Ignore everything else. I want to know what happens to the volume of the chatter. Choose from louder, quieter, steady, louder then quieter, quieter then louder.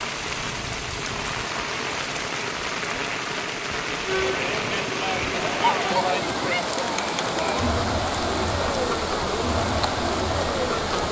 steady.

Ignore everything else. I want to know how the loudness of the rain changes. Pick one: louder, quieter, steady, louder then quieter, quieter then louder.
steady.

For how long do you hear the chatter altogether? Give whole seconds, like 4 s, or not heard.
7 s.